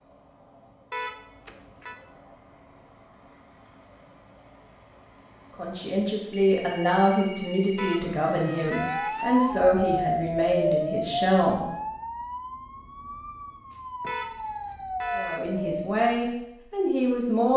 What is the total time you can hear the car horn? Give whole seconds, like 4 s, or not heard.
4 s.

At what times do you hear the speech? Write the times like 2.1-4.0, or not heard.
5.5-11.7, 15.2-17.5.